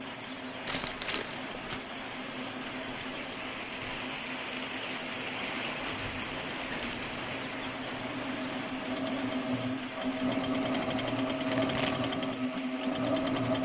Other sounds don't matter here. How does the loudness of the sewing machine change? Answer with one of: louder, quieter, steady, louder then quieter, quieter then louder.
louder.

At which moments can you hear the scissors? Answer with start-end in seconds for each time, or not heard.
not heard.